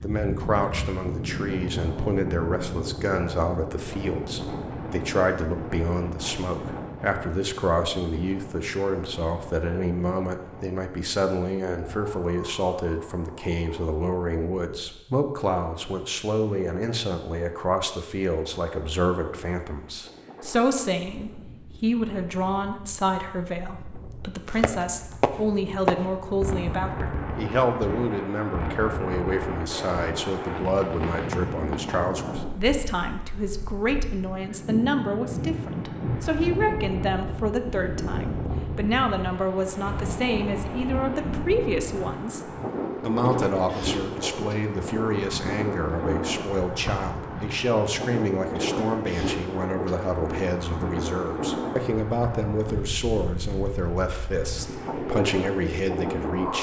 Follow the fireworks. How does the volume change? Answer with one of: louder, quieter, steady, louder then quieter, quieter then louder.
quieter.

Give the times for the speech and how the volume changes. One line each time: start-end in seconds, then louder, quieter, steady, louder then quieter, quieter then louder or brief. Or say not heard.
0.0-56.5 steady.